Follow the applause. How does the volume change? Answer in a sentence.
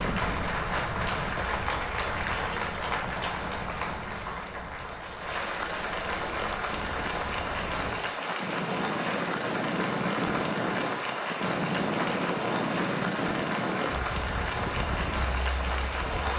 The volume of the applause stays about the same.